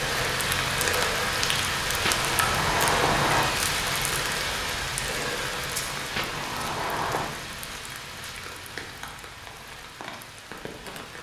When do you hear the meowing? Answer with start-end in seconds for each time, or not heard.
2.0-3.5, 6.1-7.3.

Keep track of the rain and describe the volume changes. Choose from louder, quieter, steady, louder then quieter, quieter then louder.
quieter.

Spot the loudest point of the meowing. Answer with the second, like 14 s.
3 s.